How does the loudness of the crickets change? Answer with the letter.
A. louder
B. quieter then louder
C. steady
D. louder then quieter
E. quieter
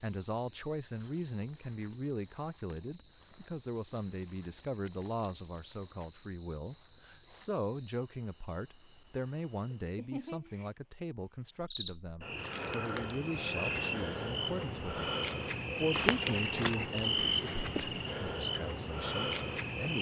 A.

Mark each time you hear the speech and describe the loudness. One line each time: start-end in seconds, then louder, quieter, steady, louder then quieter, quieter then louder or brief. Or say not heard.
0.0-15.1 steady
15.8-19.9 quieter then louder.